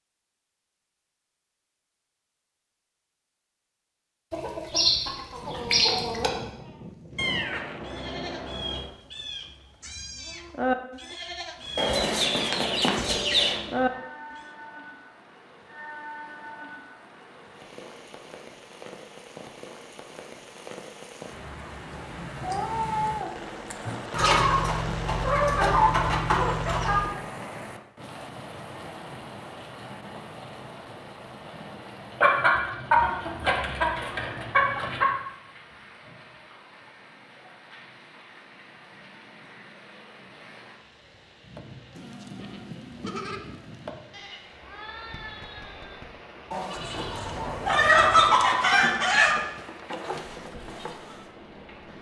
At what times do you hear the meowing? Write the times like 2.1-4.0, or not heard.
7.2-8.9, 22.4-24.1, 46.8-48.4.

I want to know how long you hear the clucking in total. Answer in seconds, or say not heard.
13 s.